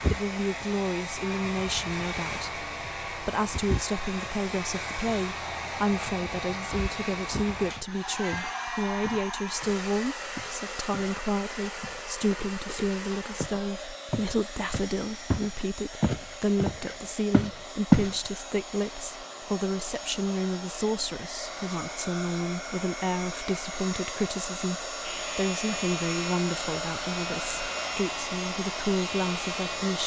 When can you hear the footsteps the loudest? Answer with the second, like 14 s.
18 s.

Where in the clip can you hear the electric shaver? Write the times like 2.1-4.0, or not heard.
25.0-30.0.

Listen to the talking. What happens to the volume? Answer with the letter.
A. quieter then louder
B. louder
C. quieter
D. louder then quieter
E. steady
E.